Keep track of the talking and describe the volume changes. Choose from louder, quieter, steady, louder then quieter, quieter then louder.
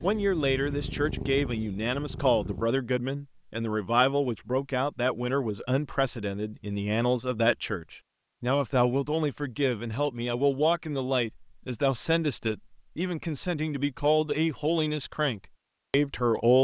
steady.